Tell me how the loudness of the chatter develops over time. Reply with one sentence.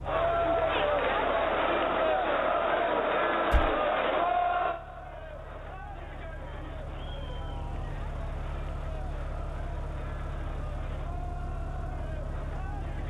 The volume of the chatter goes down.